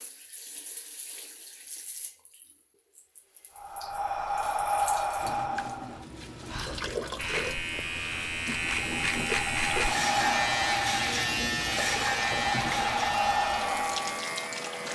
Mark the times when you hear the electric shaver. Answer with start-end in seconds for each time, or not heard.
7.2-14.9.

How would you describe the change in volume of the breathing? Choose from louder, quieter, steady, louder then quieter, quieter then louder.
quieter then louder.